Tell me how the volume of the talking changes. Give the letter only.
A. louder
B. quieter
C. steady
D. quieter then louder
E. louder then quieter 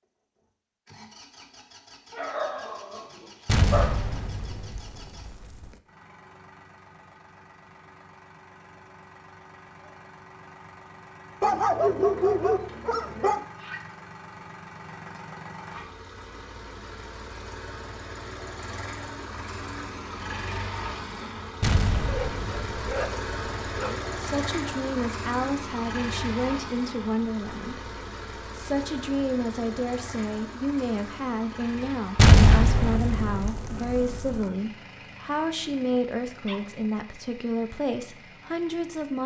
C.